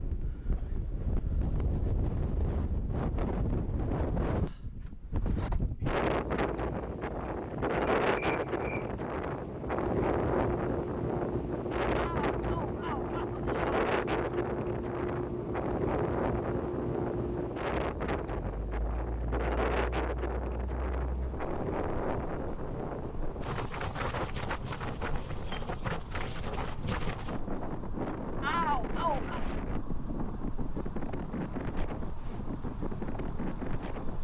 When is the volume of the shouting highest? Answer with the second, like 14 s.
29 s.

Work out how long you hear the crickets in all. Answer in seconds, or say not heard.
34 s.